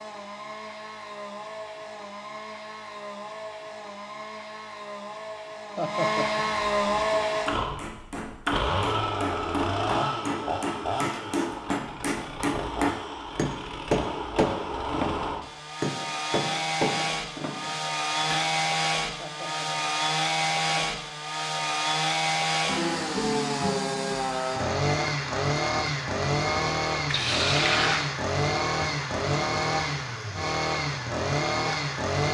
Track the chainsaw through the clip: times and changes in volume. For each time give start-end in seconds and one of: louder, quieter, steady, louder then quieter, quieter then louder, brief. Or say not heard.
0.0-32.2 louder.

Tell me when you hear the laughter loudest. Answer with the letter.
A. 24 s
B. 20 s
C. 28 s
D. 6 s
D.